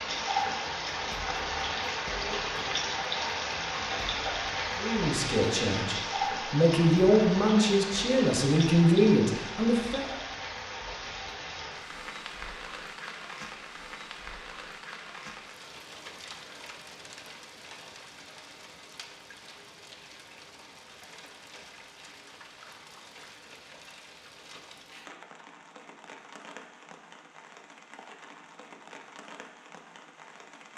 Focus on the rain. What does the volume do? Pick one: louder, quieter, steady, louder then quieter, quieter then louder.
quieter.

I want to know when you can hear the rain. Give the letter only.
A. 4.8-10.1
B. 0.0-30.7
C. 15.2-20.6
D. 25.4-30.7
B.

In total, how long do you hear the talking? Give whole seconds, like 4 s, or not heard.
5 s.